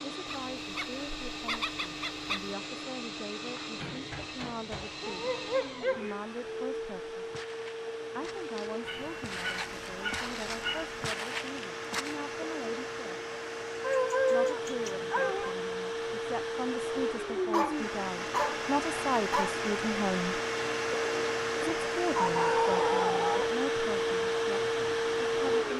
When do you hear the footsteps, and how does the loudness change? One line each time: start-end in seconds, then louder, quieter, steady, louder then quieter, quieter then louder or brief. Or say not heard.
7.2-12.2 louder.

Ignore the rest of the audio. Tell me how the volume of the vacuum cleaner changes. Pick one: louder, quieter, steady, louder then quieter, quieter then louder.
louder.